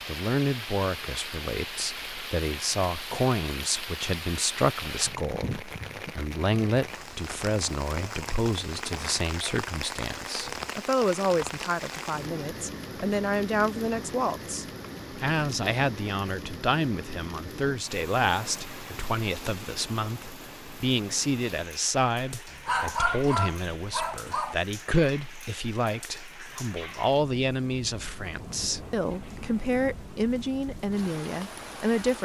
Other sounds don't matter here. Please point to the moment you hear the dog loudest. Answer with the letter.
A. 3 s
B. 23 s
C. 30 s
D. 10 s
B.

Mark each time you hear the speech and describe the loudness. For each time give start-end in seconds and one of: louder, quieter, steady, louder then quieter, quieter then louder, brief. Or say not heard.
0.1-32.1 steady.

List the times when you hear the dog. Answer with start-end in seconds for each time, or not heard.
22.5-24.6.